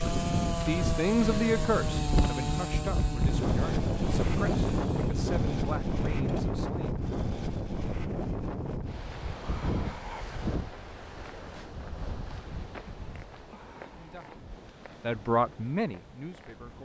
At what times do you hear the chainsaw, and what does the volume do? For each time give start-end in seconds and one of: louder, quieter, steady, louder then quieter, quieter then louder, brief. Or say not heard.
0.0-6.4 quieter.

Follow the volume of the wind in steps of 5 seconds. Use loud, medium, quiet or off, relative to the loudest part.
loud, loud, medium, quiet.